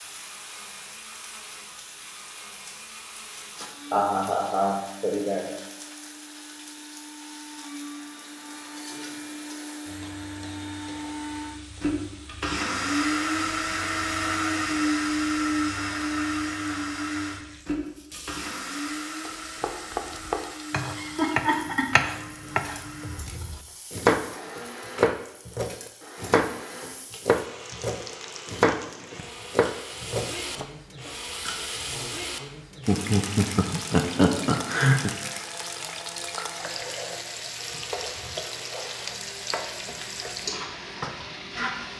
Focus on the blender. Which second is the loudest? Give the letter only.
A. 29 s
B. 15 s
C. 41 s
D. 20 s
B.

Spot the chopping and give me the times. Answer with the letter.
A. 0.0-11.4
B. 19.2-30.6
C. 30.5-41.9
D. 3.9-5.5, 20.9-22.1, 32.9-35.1
B.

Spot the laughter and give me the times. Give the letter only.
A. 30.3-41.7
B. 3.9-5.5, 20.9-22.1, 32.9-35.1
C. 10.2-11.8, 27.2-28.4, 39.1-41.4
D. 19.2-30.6
B.